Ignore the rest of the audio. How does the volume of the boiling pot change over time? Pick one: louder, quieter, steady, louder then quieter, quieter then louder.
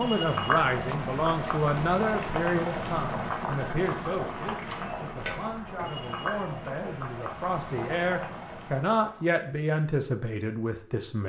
quieter.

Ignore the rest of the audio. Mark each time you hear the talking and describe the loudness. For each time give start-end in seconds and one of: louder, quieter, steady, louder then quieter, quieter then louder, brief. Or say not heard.
0.0-11.2 quieter then louder.